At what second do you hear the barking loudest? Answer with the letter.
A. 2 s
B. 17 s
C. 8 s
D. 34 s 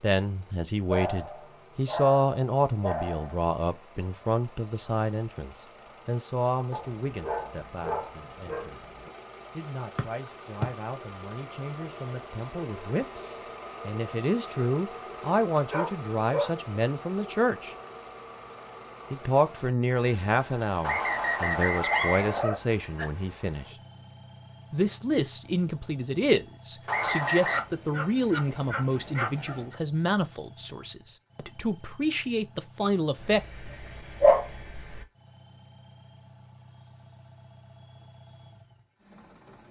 D.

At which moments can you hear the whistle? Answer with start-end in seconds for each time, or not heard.
9.9-10.7, 20.8-22.4, 26.9-27.6.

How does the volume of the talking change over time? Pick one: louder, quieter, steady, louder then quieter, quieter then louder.
quieter then louder.